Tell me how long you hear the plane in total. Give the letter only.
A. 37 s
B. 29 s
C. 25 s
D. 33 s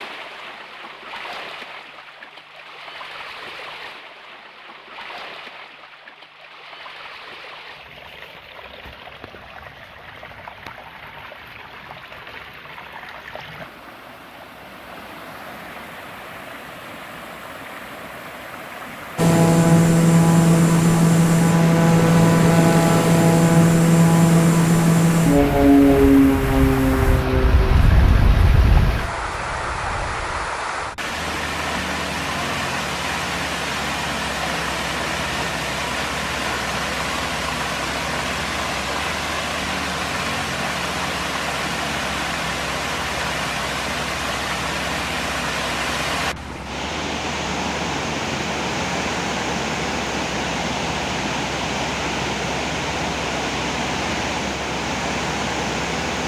A.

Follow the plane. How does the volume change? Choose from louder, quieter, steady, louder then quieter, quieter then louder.
quieter.